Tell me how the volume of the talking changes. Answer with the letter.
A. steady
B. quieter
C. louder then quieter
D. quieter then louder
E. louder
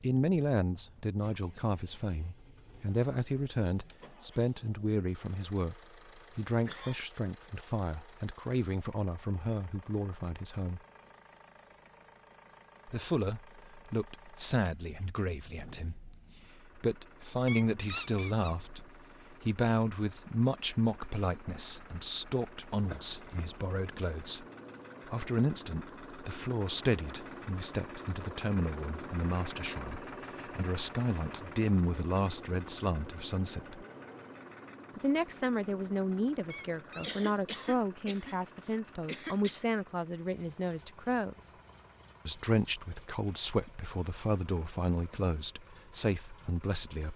A.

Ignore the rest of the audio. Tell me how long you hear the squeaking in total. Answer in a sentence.
You can hear the squeaking for 2 seconds altogether.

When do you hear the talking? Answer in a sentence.
The talking can be heard from 0.0 to 5.8 s, from 6.3 to 10.8 s, from 12.8 to 24.4 s, from 25.1 to 33.9 s, from 35.0 to 41.5 s and from 42.2 to 47.1 s.